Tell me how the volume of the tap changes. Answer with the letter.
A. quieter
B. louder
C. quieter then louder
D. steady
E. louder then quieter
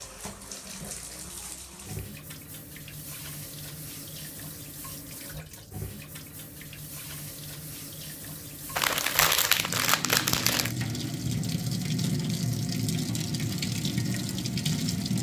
B.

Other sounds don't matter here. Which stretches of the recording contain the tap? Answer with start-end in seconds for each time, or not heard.
0.0-15.1.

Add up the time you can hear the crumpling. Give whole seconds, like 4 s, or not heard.
2 s.